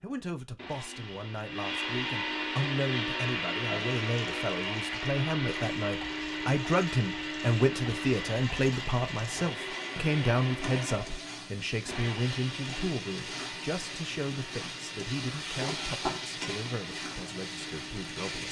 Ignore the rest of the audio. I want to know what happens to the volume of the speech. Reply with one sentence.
The volume of the speech goes up, then down.